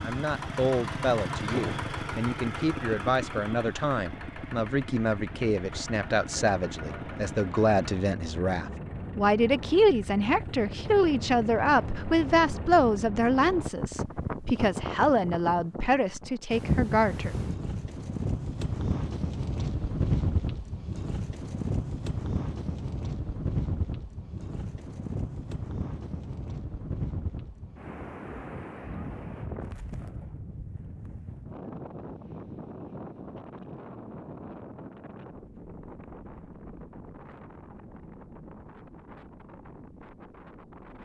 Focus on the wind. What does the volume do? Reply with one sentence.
The loudness of the wind goes up, then down.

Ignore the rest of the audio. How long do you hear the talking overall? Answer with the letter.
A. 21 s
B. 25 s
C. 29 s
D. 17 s
D.